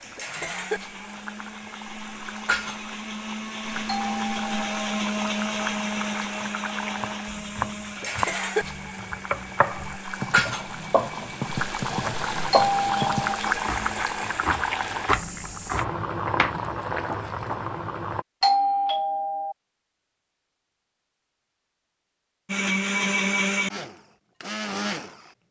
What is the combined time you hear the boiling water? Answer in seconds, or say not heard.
18 s.